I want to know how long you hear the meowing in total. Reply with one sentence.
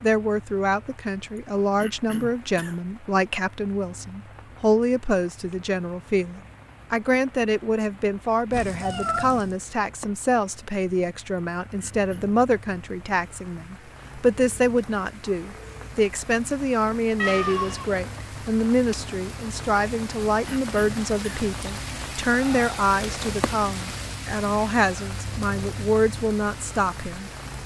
You can hear the meowing for 2 seconds altogether.